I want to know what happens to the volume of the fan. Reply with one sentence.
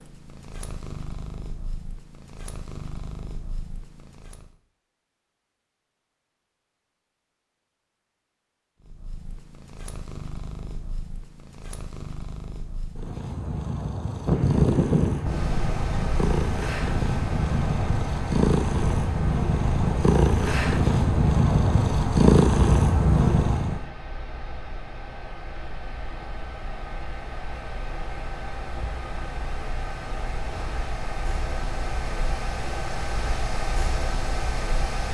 The loudness of the fan goes down, then up.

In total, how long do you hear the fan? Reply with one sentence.
You can hear the fan for 21 seconds altogether.